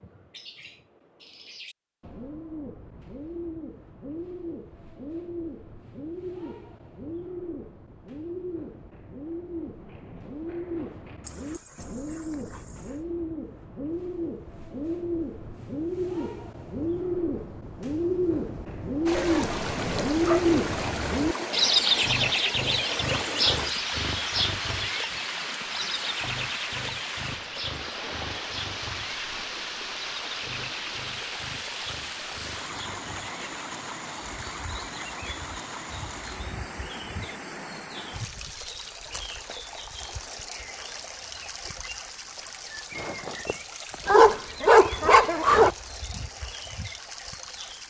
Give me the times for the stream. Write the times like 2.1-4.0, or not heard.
19.1-47.8.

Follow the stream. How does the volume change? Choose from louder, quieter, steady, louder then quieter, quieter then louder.
quieter.